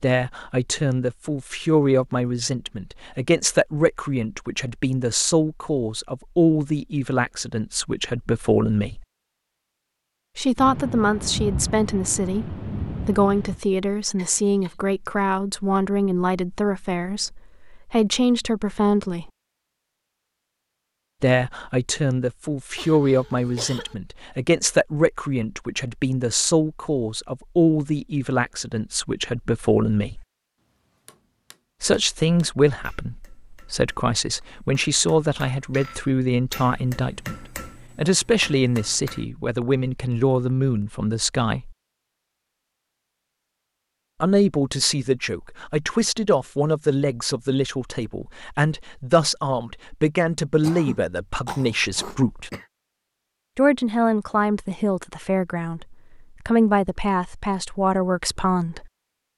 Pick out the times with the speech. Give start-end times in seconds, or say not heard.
0.0-9.1, 10.3-19.3, 21.2-30.2, 31.8-41.8, 44.2-52.5, 53.5-58.9.